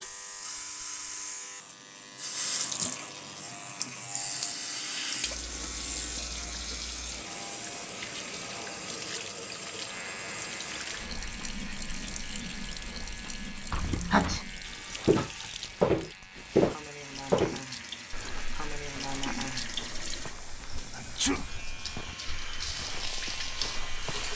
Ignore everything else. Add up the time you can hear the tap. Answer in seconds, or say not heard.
24 s.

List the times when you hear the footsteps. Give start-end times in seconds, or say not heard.
13.7-24.3.